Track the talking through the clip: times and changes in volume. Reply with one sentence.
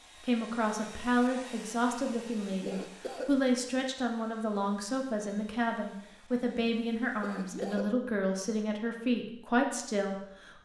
You can hear the talking from 0.2 to 10.6 s, at a steady volume.